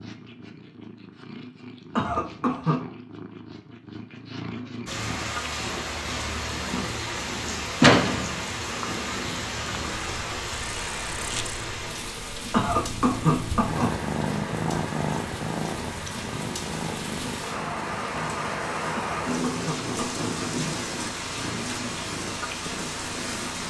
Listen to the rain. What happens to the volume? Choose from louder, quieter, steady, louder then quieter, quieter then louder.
quieter then louder.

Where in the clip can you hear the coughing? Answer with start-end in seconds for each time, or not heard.
1.9-2.8, 12.5-13.9, 18.9-20.4.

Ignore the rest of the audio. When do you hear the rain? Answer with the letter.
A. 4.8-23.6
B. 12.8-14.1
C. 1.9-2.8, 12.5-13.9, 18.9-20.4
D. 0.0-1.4
A.